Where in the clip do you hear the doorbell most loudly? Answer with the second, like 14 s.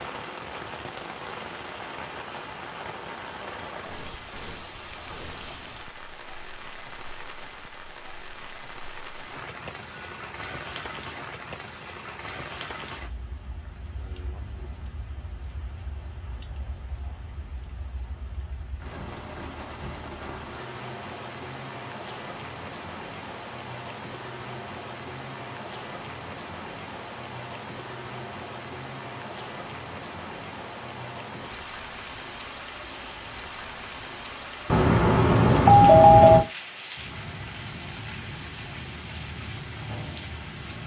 36 s.